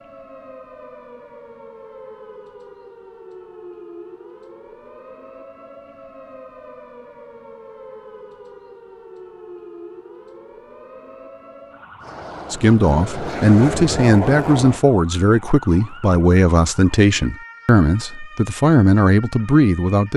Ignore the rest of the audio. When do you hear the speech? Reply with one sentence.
You can hear the speech from 12.5 to 20.1 s.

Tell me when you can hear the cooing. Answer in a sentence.
You can't hear the cooing here.